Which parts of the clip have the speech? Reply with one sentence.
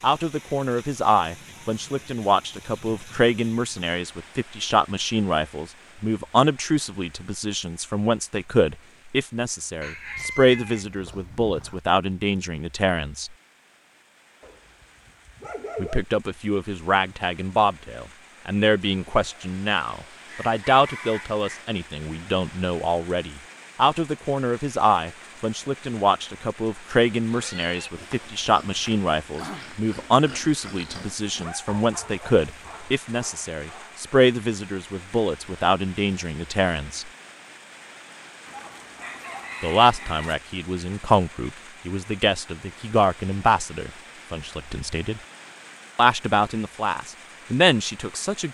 You can hear the speech from 0.0 to 13.3 s, from 15.8 to 37.1 s, from 39.6 to 45.2 s and from 46.0 to 48.5 s.